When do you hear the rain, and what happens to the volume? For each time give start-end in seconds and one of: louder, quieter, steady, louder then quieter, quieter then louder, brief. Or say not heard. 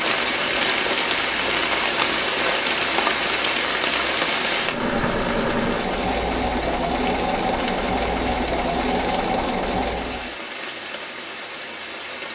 0.0-12.3 quieter.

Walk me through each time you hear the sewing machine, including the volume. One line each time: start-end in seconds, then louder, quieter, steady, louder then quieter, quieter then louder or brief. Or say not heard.
4.5-10.3 steady.